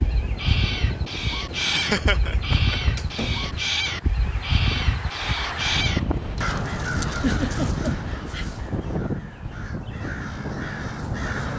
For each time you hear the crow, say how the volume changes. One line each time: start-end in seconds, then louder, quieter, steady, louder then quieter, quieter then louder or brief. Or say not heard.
0.0-11.5 quieter.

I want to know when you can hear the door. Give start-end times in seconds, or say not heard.
2.8-3.5.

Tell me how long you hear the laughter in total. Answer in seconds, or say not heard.
3 s.